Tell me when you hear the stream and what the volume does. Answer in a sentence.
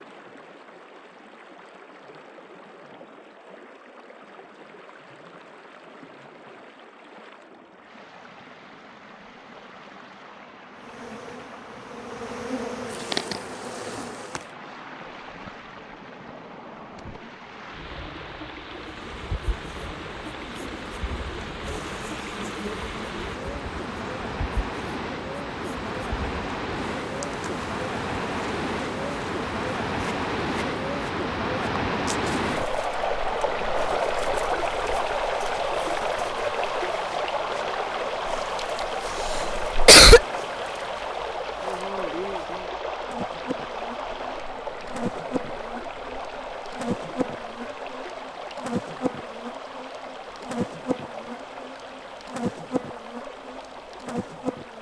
You can hear the stream from 0.0 to 54.7 s, getting louder then quieter.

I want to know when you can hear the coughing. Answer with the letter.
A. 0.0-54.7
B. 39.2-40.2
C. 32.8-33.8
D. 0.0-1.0
B.